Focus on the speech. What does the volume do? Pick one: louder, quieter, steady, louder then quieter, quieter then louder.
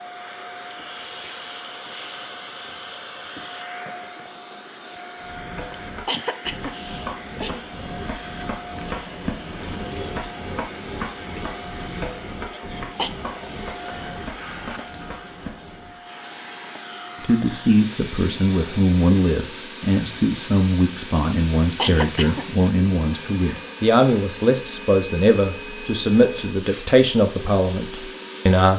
steady.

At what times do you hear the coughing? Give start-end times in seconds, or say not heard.
5.6-7.5, 12.5-13.1, 21.8-22.7.